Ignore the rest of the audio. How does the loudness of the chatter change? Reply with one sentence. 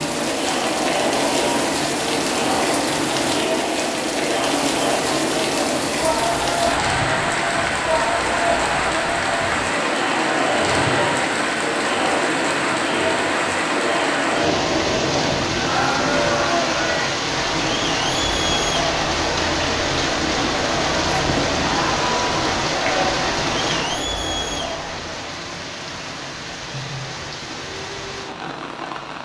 The loudness of the chatter stays about the same.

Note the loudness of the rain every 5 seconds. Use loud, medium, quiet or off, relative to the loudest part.
loud, loud, loud, loud, loud, medium.